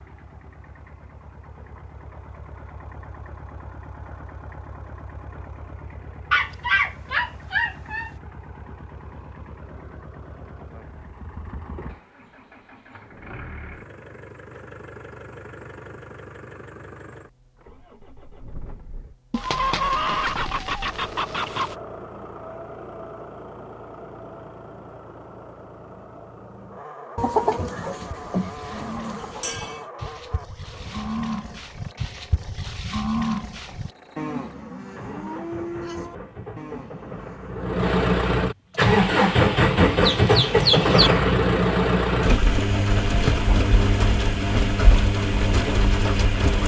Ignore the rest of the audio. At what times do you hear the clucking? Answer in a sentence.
You can hear the clucking from 6.3 to 8.1 s, from 19.3 to 21.8 s, from 27.1 to 29.9 s and from 40.0 to 41.1 s.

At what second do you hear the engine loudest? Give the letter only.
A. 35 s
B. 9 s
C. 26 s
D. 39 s
D.